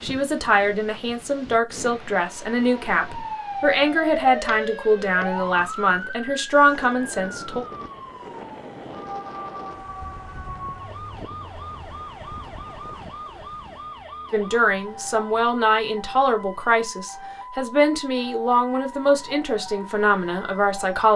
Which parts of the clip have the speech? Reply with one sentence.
You can hear the speech from 0.0 to 7.7 s and from 14.3 to 21.1 s.